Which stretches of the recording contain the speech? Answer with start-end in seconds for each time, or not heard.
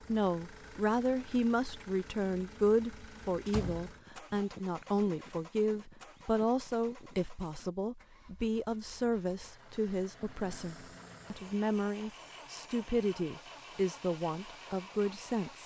0.1-15.6.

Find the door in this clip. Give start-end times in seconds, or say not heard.
3.5-4.4.